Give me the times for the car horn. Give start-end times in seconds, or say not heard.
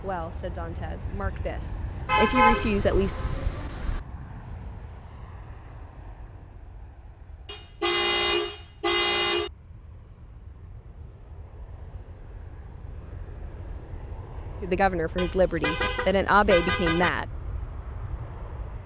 2.0-4.0, 7.5-9.5, 15.2-17.1.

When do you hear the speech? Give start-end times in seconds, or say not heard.
0.0-3.2, 14.6-17.2.